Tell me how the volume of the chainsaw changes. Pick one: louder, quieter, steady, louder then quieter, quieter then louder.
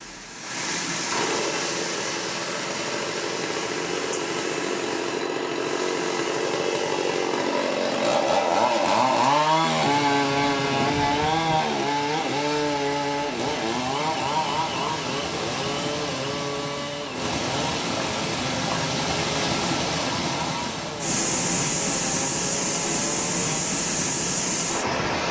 louder then quieter.